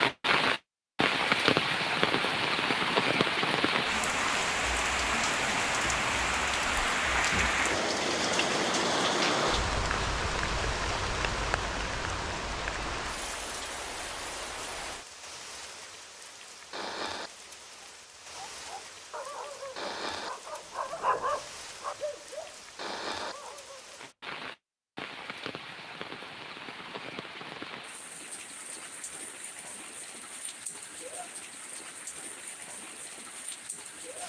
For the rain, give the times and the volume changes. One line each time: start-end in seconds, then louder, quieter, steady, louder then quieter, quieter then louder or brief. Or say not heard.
0.0-34.2 quieter.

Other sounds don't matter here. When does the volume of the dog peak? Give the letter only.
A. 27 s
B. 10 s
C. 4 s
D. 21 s
D.